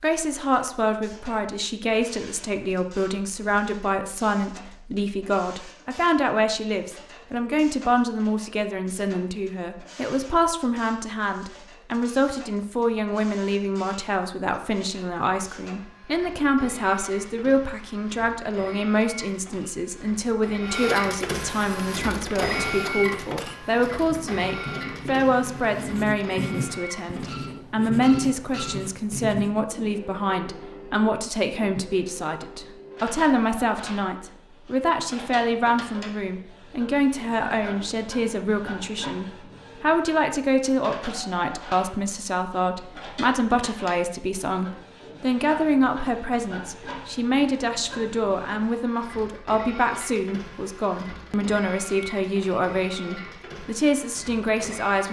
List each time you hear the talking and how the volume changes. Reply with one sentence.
You can hear the talking from 0.0 to 55.0 s, at a steady volume.